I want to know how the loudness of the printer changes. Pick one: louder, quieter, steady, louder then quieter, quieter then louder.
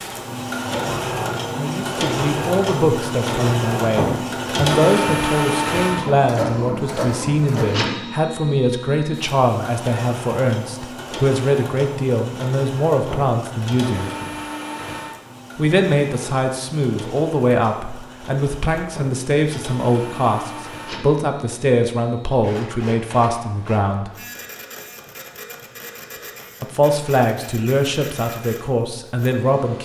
quieter.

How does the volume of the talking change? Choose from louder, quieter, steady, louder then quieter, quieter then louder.
steady.